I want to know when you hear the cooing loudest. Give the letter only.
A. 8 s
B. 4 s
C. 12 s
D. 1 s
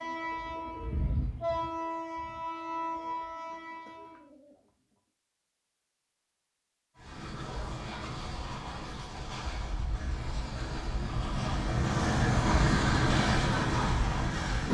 D.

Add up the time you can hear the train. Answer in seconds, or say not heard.
12 s.